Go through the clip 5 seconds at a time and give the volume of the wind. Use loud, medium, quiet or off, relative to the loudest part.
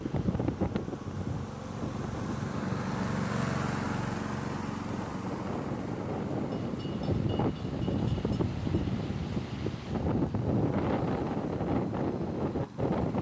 medium, loud, loud.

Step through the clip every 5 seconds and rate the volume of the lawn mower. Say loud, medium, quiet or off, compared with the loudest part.
loud, medium, medium.